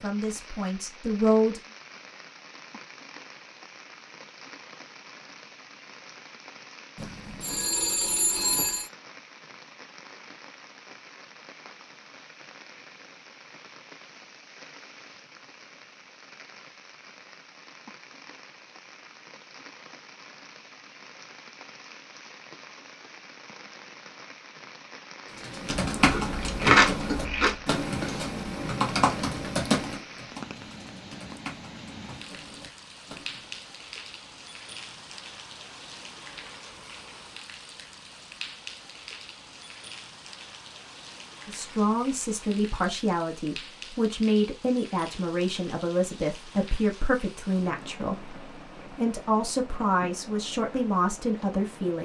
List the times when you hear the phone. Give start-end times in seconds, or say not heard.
7.0-8.9.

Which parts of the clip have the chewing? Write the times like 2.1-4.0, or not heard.
25.9-27.6.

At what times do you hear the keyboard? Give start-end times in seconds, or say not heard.
25.4-33.6.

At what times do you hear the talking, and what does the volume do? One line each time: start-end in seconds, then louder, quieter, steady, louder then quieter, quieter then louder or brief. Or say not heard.
0.0-1.6 brief
41.5-52.0 steady.